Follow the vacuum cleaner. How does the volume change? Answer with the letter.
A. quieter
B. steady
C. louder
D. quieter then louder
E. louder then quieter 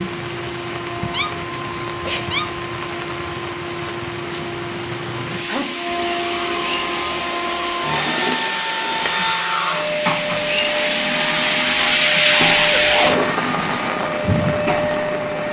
C.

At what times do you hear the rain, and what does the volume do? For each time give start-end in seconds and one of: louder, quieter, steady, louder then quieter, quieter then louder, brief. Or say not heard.
0.0-15.4 louder.